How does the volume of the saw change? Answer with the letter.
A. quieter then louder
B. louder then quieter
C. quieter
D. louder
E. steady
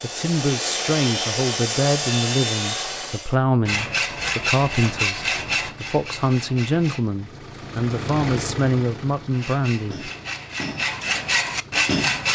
A.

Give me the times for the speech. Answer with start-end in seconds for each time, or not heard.
0.0-10.1.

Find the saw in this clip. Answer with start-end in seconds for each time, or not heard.
0.0-7.0, 9.3-12.3.